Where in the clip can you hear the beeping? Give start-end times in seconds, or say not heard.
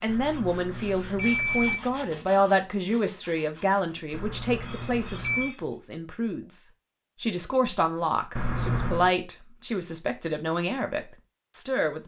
0.1-1.8, 4.1-5.5, 8.3-9.1.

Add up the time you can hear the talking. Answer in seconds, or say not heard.
12 s.